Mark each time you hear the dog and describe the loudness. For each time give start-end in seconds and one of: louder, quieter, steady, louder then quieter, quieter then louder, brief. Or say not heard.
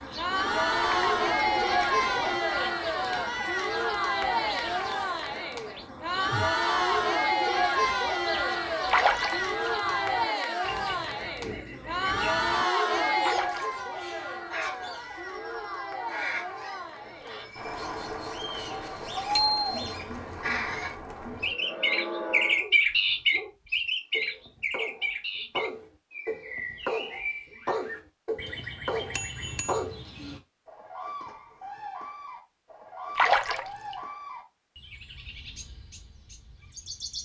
22.4-30.1 louder.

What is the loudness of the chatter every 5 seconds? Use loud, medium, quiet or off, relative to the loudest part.
loud, loud, loud, medium, medium, off, off, off.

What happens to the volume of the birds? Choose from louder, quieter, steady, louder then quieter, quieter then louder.
louder then quieter.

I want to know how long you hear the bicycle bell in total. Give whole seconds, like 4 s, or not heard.
3 s.